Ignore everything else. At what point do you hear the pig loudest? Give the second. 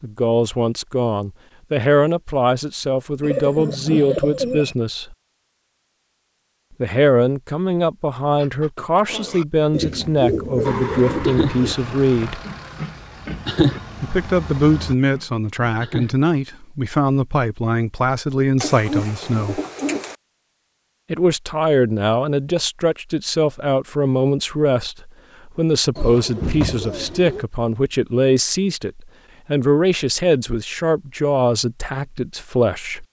14 s.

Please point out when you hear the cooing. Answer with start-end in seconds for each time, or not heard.
3.2-4.8, 9.7-11.8, 18.6-20.1, 25.9-27.4.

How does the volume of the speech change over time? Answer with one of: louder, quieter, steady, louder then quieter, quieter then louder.
steady.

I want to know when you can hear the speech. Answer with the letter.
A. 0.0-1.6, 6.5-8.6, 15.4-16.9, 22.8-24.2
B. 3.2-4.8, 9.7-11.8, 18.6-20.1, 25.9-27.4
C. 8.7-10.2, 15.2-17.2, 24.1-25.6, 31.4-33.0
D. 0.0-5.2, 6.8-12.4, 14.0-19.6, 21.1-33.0
D.